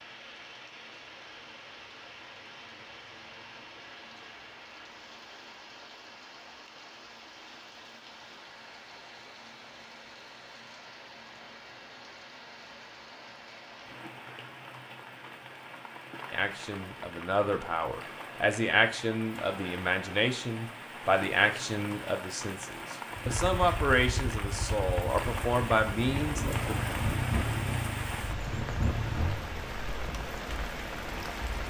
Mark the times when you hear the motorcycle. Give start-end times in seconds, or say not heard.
23.2-29.4.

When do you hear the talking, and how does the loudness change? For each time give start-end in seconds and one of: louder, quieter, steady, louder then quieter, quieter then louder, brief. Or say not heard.
16.3-26.8 steady.